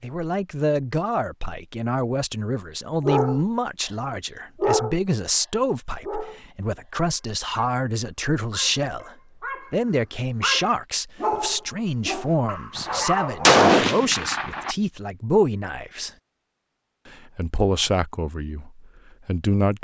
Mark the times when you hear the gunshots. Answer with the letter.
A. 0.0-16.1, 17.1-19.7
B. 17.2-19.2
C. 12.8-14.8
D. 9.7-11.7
C.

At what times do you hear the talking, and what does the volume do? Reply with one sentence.
You can hear the talking from 0.0 to 16.1 s, at a steady volume; and briefly from 17.1 to 19.7 s.